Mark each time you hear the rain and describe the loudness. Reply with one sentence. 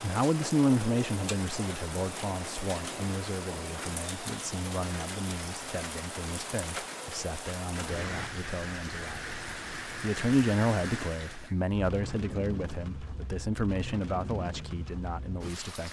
You can hear the rain from 0.0 to 15.8 s, at a steady volume.